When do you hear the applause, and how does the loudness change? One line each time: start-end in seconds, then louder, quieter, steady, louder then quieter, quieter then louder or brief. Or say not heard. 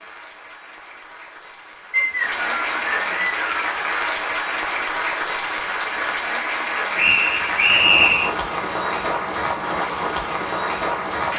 0.0-11.3 louder.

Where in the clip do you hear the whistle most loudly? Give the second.
8 s.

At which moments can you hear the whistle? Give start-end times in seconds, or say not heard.
1.9-3.8, 7.0-8.3.